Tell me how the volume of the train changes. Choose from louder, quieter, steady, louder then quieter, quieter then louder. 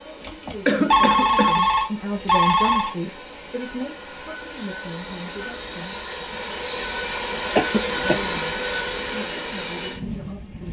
louder.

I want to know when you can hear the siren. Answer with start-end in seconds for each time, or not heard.
not heard.